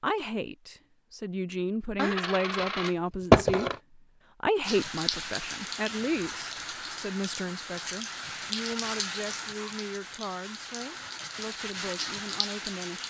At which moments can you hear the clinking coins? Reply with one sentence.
The clinking coins can be heard from 1.9 to 3.8 s.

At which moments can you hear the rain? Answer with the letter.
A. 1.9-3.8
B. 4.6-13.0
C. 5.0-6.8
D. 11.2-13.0
B.